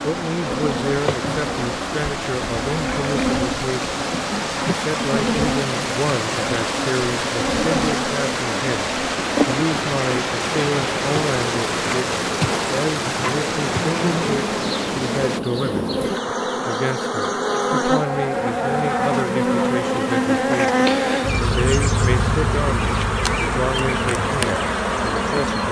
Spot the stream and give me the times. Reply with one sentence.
You can hear the stream from 0.0 to 15.4 s.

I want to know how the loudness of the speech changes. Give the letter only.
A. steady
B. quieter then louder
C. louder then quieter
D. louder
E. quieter
A.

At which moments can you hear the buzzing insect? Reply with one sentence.
You can hear the buzzing insect from 0.0 to 25.6 s.